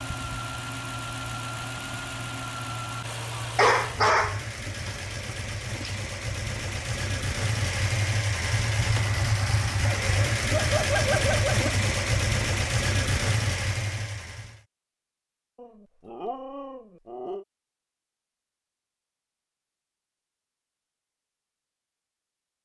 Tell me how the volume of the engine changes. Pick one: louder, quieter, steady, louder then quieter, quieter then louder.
louder.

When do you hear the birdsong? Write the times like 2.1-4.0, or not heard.
not heard.